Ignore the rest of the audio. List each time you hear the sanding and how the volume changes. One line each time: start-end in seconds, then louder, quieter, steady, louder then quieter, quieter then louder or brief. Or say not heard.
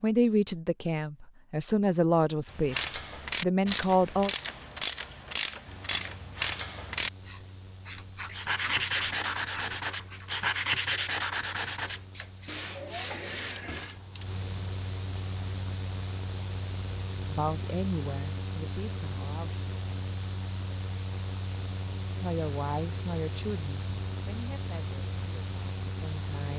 8.3-14.0 quieter.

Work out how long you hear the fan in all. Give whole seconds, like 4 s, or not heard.
21 s.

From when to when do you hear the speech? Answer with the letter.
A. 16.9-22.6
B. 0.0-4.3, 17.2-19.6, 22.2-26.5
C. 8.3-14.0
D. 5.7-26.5
B.